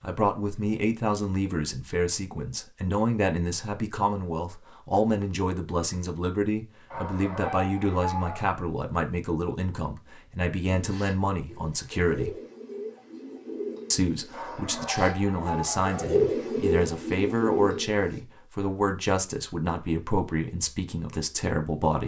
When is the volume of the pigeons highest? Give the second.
16 s.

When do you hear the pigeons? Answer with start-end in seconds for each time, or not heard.
10.7-18.2.